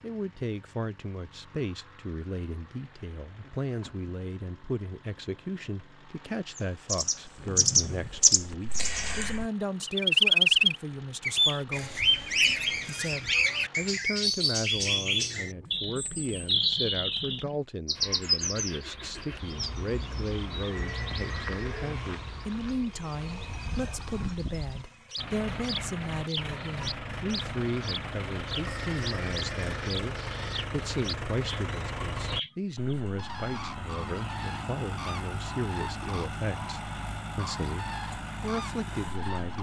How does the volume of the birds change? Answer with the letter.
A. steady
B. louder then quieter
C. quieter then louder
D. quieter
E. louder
D.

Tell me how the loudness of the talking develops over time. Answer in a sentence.
The loudness of the talking stays about the same.